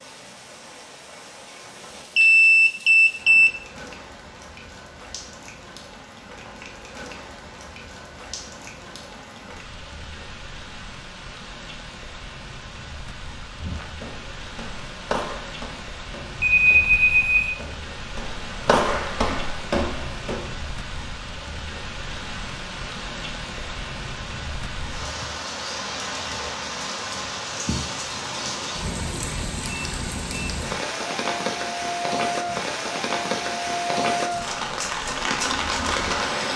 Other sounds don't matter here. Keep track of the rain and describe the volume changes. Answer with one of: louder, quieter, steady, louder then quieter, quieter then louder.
louder.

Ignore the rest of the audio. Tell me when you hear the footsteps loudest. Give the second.
19 s.